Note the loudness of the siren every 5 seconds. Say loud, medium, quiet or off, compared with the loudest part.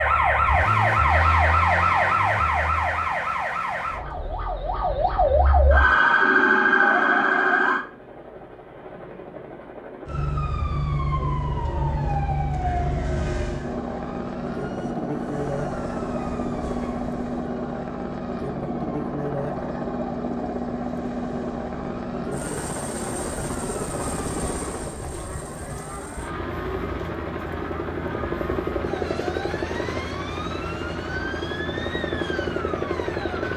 loud, loud, medium, quiet, quiet, quiet, quiet.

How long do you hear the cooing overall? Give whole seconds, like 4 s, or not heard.
not heard.